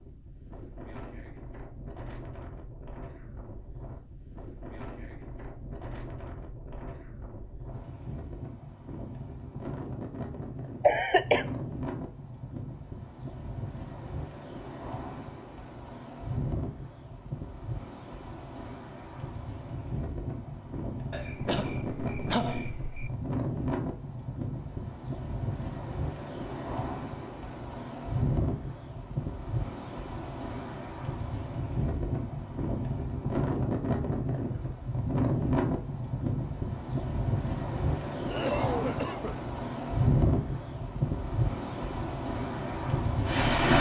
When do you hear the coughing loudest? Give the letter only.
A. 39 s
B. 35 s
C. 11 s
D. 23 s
C.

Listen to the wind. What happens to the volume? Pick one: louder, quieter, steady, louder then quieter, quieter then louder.
louder.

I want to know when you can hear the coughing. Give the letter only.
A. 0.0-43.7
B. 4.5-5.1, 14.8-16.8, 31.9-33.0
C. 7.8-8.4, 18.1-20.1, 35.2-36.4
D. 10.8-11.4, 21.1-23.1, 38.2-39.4
D.